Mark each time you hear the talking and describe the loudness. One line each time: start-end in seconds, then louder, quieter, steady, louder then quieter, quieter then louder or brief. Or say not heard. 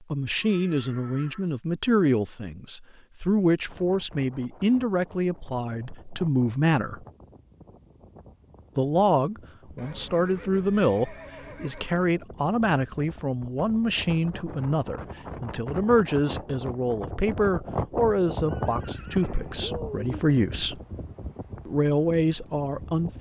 0.1-7.0 steady
8.8-20.8 steady
21.6-23.1 brief.